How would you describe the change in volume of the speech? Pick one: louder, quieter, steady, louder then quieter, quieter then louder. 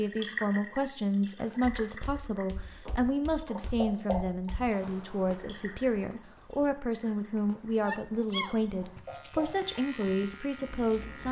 steady.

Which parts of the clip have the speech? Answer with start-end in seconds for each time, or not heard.
0.0-11.2.